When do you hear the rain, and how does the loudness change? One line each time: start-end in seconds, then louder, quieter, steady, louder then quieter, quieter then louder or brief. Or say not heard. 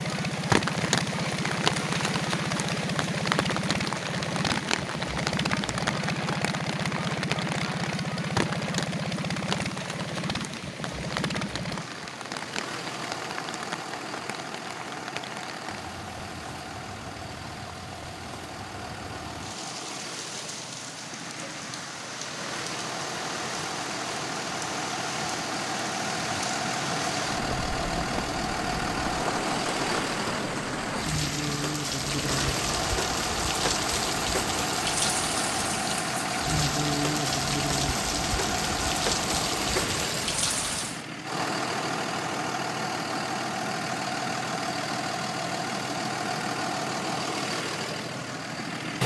0.0-41.0 quieter then louder.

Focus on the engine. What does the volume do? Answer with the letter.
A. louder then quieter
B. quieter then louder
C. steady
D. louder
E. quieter
B.